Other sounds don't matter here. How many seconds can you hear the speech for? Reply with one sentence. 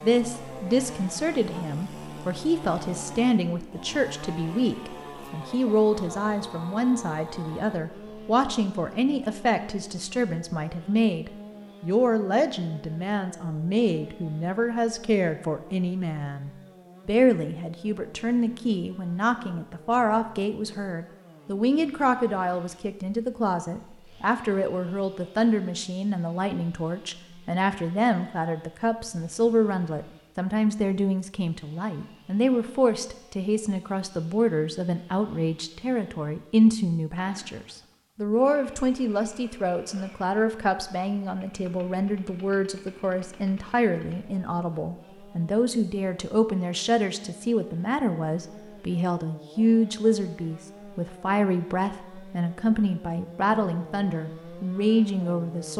You can hear the speech for 56 seconds altogether.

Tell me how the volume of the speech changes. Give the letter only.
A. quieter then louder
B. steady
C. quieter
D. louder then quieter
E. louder
B.